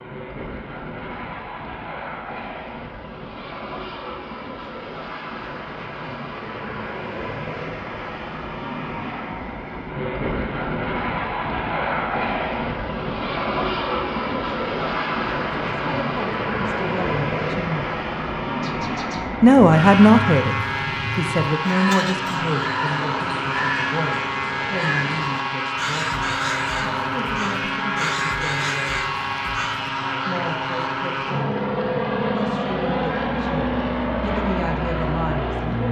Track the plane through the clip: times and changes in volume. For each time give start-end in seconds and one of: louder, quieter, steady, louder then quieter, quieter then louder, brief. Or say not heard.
0.0-35.8 louder.